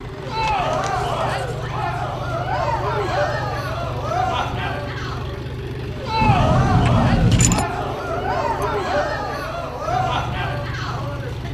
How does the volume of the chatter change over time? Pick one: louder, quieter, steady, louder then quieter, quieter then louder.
steady.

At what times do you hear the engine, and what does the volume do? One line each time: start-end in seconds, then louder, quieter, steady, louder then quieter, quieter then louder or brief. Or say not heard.
0.0-11.5 steady.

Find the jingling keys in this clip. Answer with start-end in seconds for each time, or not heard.
0.2-1.6, 6.2-7.7.